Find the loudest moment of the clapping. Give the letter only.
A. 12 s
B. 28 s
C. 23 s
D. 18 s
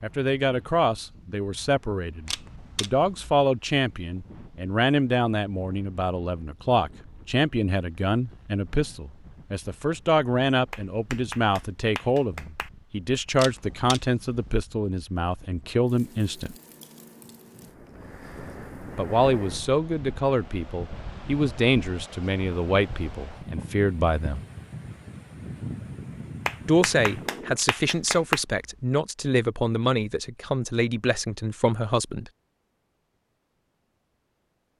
B.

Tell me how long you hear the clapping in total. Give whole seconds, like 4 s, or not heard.
4 s.